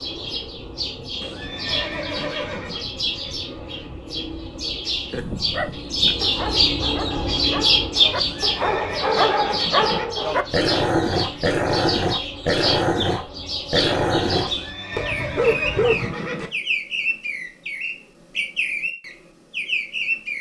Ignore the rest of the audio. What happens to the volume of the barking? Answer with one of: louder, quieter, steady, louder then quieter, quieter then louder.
louder.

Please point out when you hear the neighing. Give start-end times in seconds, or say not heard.
1.2-2.9, 8.2-10.1, 14.4-16.5.